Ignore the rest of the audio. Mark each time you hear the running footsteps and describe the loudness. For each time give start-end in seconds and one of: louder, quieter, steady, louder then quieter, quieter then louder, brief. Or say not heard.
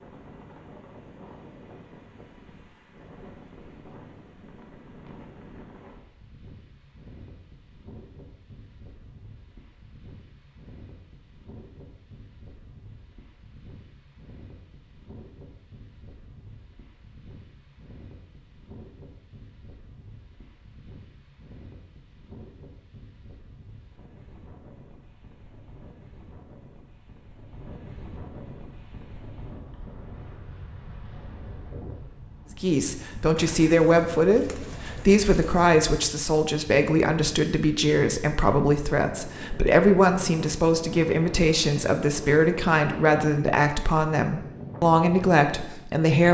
not heard.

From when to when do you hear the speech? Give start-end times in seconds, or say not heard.
32.6-46.2.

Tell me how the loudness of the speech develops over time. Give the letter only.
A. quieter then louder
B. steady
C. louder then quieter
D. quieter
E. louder
B.